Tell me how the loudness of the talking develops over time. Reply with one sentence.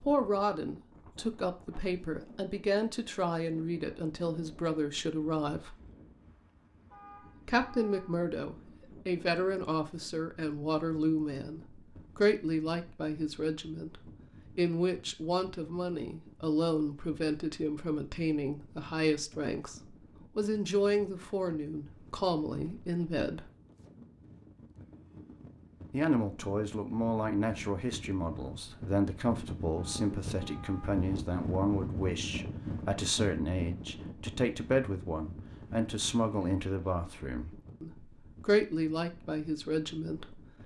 The volume of the talking stays about the same.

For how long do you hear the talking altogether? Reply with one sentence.
The talking can be heard for 36 seconds in total.